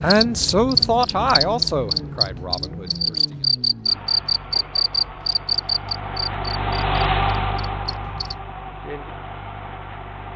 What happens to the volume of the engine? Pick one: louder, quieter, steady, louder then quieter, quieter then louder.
louder then quieter.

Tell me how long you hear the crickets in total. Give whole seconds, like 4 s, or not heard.
8 s.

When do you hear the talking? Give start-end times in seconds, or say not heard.
0.0-3.5.